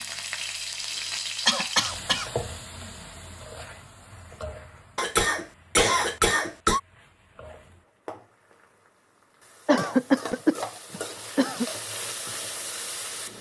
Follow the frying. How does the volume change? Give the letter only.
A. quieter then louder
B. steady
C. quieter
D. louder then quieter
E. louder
A.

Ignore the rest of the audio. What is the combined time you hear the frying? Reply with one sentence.
The frying can be heard for 13 seconds in total.